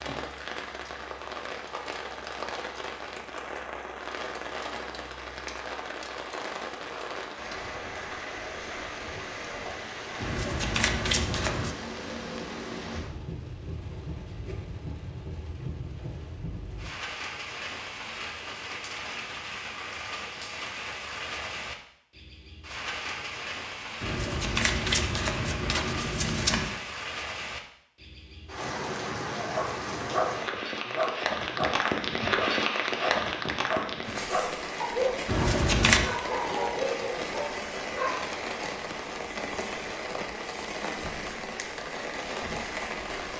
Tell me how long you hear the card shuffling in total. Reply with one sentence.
You can hear the card shuffling for 5 seconds altogether.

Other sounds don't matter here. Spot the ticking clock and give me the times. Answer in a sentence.
You can't hear the ticking clock here.